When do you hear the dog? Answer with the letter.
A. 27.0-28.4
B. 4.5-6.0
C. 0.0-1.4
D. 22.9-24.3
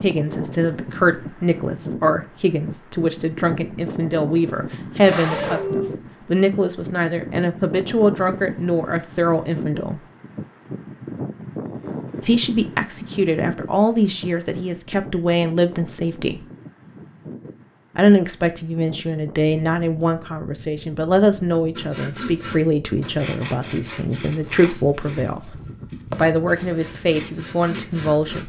B.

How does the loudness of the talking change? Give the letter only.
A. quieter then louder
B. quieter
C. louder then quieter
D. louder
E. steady
E.